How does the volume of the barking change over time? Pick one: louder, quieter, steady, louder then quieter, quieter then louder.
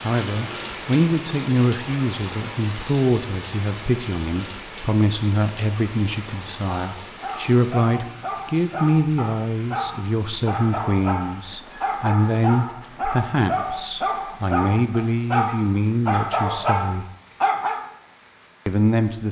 louder.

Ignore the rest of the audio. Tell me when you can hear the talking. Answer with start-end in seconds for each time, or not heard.
0.0-17.1, 18.6-19.2.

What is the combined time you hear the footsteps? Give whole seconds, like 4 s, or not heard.
not heard.